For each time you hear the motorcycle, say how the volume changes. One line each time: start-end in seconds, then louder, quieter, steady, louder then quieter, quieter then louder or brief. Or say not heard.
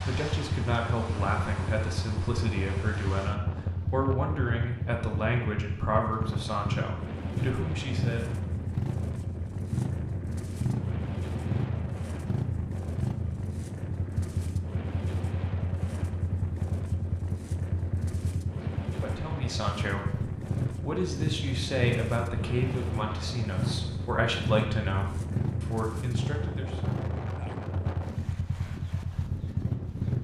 0.1-30.2 steady.